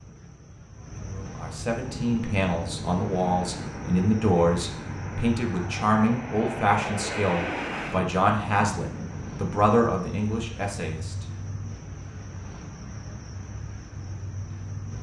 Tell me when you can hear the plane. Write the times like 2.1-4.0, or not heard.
1.8-9.6.